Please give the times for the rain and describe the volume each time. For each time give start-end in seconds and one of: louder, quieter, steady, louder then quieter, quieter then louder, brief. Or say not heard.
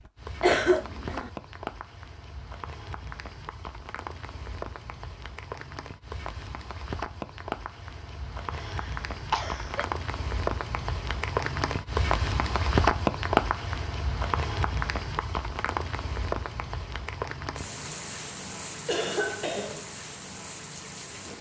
0.0-21.3 louder then quieter.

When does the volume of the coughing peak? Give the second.
1 s.